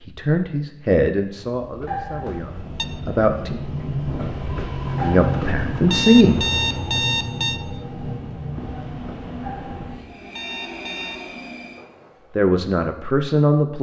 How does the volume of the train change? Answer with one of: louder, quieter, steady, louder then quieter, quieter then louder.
louder then quieter.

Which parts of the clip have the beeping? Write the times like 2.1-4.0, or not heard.
1.9-2.9, 5.0-7.6, 9.4-11.2.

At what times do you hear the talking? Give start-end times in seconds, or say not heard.
0.0-3.6, 5.0-6.4, 12.3-13.7.